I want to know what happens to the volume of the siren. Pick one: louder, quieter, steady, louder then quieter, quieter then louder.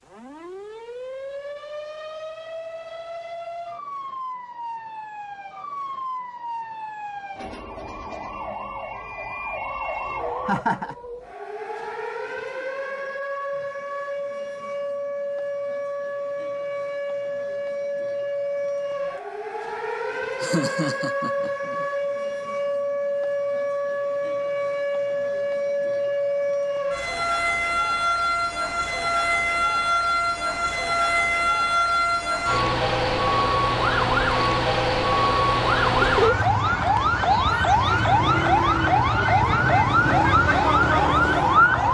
louder.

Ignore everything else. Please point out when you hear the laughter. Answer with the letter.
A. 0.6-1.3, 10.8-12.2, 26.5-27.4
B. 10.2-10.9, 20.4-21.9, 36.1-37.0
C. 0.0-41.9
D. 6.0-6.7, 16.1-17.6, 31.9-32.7
B.